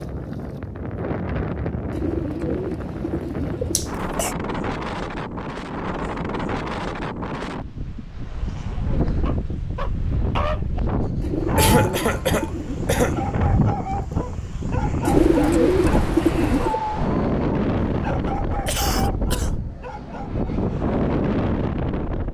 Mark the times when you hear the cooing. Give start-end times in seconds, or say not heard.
1.9-3.9, 11.2-13.3, 15.1-16.8.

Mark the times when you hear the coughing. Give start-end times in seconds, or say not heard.
3.8-4.3, 11.6-13.2, 18.6-19.5.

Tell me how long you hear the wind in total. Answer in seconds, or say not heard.
22 s.